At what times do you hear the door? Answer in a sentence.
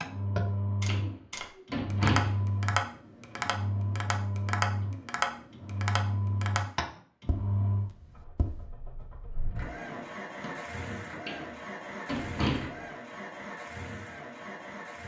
You can hear the door from 0.8 to 2.4 s and from 11.2 to 12.8 s.